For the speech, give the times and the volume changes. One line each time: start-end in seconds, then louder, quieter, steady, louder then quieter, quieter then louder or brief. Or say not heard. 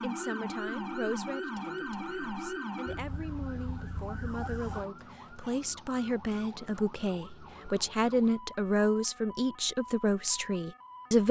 0.0-11.2 louder.